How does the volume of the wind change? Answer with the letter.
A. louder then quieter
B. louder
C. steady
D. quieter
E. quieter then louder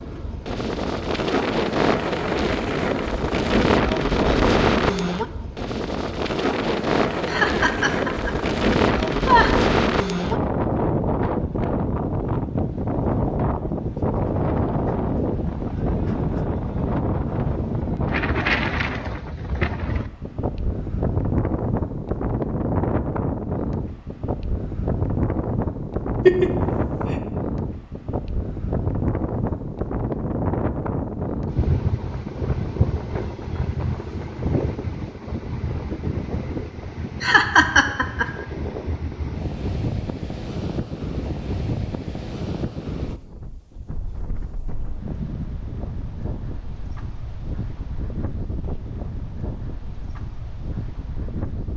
D.